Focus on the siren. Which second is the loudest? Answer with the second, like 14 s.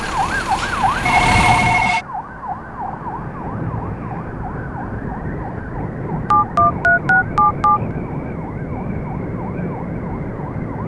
1 s.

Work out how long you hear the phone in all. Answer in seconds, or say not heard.
3 s.